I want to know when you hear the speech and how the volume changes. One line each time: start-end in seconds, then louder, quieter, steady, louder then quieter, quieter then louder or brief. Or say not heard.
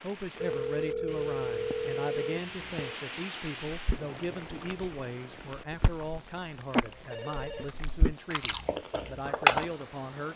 0.0-10.3 steady.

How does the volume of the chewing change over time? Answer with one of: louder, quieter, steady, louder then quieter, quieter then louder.
louder then quieter.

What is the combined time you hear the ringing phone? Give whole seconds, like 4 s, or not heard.
3 s.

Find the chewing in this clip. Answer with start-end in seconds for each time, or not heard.
3.7-9.7.